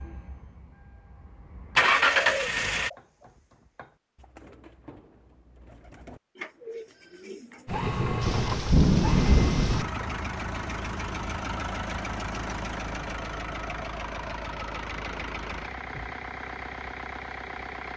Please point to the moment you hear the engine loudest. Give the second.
2 s.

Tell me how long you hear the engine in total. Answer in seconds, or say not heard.
13 s.